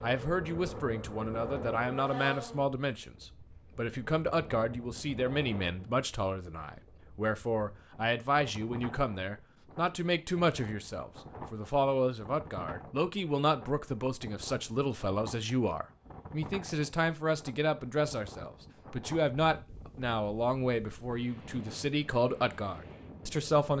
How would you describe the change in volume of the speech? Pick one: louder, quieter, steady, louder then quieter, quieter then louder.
steady.